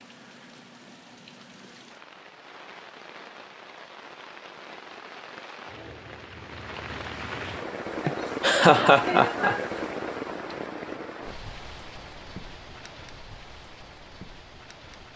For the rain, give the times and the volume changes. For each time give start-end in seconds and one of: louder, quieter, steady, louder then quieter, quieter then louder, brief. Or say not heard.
0.0-15.1 louder then quieter.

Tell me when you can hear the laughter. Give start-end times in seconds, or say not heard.
8.1-9.7.